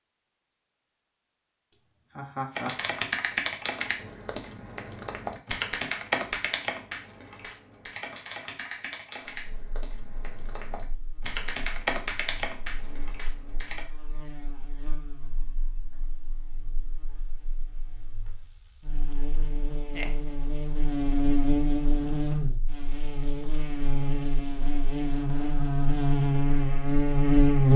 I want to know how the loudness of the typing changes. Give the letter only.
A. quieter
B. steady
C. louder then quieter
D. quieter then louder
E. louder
D.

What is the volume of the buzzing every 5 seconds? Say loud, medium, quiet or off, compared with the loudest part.
off, off, quiet, quiet, medium, loud.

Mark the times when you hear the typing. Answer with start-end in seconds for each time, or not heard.
2.5-13.8.